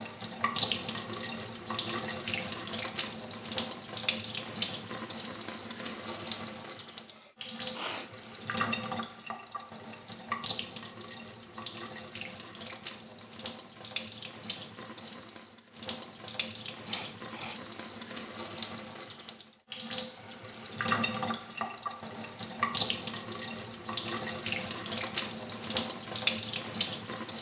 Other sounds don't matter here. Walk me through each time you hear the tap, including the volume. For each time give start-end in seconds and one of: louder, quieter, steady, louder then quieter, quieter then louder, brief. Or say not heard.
0.0-27.3 quieter then louder.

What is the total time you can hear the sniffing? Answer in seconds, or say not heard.
2 s.